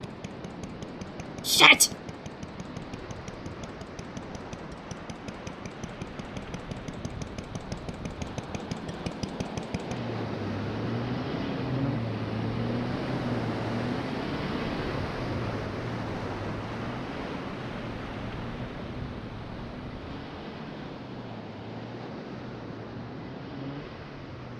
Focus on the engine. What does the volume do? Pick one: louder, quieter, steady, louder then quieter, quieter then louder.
louder then quieter.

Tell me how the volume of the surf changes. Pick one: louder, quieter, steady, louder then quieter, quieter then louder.
louder then quieter.